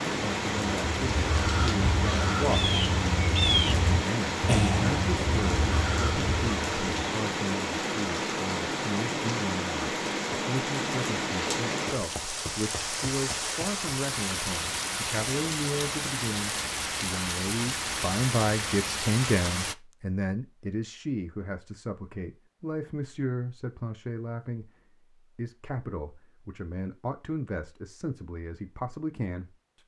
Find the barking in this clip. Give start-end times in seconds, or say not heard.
not heard.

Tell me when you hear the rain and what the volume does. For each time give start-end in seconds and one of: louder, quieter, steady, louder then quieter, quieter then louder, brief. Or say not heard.
0.0-19.8 steady.